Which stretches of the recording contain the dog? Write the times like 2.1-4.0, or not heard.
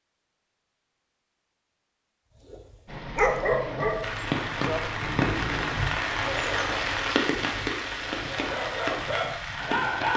2.5-7.0, 8.2-10.1.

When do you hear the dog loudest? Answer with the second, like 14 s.
3 s.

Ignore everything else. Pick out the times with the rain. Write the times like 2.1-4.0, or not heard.
2.9-10.1.